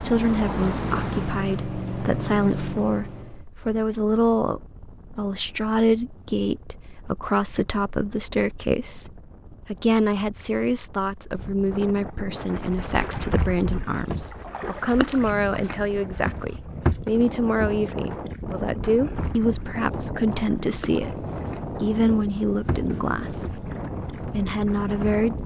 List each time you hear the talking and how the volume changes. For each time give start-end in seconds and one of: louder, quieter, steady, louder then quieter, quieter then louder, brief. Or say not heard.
0.0-25.4 steady.